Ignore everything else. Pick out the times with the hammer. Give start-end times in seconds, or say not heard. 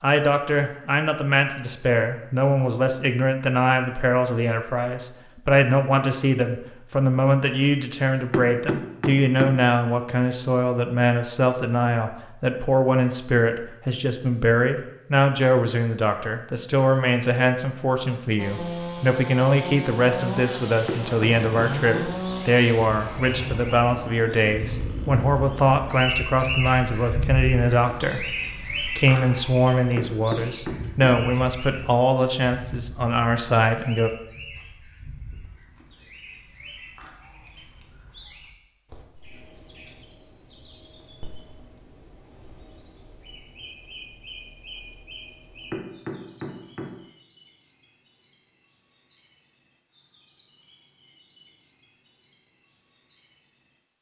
8.3-9.7, 20.9-22.2, 29.9-31.1, 45.7-47.0.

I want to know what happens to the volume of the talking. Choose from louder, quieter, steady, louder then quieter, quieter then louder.
steady.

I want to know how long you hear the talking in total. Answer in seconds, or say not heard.
34 s.